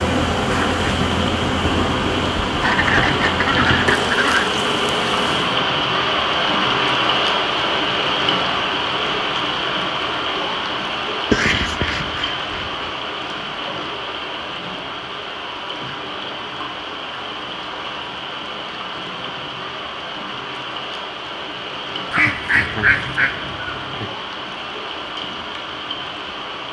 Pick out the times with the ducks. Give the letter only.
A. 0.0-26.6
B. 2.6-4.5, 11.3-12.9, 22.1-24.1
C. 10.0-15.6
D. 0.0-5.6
B.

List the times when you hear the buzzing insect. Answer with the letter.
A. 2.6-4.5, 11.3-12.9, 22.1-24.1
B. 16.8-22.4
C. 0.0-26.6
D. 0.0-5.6
D.